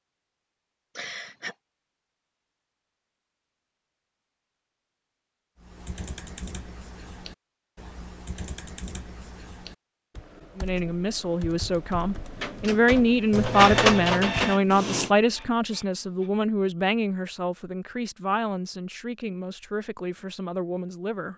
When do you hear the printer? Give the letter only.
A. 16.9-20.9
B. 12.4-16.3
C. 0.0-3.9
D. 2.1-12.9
B.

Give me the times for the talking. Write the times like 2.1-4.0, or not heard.
10.6-21.3.